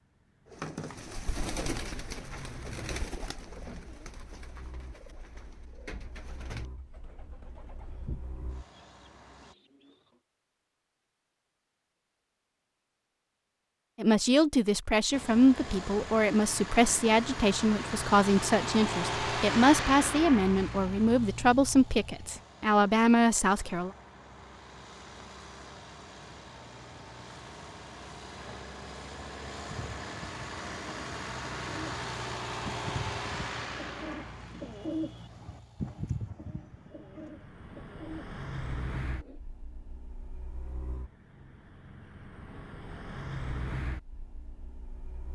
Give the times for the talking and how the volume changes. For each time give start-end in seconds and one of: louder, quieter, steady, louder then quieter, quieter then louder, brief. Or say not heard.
13.9-23.9 steady.